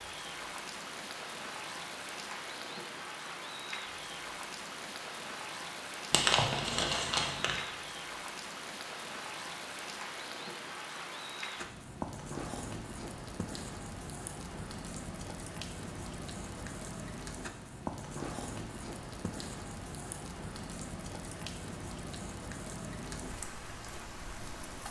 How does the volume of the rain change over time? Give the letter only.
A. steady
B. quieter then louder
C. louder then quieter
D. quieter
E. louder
A.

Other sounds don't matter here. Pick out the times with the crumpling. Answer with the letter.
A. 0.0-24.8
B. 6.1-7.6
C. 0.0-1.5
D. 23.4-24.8
B.